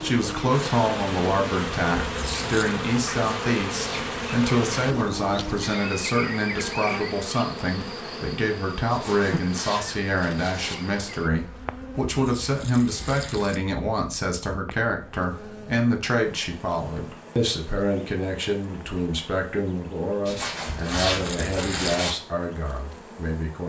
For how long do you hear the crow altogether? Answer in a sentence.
The crow can't be heard in this clip.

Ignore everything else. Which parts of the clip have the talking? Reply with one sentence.
You can hear the talking from 0.0 to 23.6 s.